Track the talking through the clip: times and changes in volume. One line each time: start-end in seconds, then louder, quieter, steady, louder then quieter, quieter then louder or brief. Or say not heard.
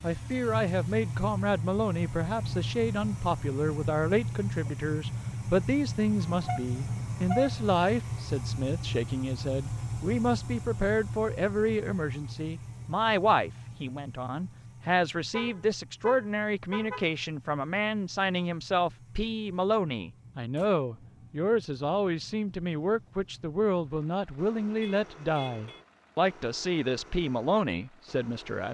0.0-28.6 steady.